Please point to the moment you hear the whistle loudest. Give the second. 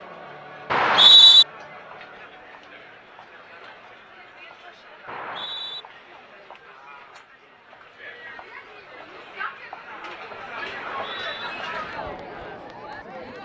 1 s.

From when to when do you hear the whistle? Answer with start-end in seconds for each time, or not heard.
0.7-1.4, 5.0-5.8, 10.8-11.5.